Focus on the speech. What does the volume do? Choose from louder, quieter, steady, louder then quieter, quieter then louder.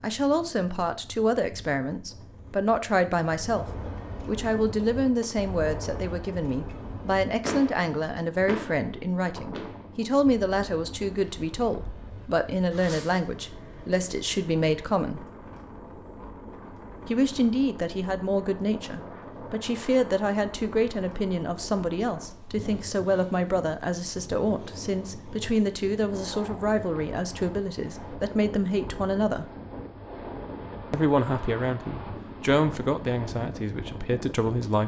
steady.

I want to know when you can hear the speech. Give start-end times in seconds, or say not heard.
0.0-3.6, 4.2-15.2, 17.1-29.4, 30.9-34.8.